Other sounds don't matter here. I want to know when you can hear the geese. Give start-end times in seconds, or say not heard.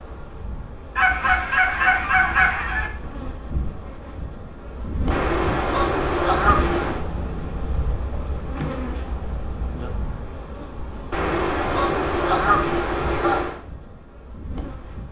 0.9-2.9, 5.1-7.0, 11.1-13.6.